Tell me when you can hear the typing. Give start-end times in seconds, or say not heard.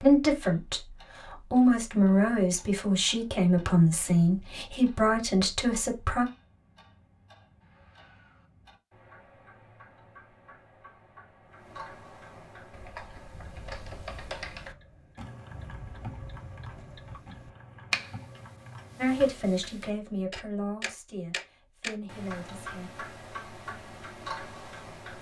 12.7-19.2.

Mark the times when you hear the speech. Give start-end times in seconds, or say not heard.
0.0-6.2, 18.9-22.9.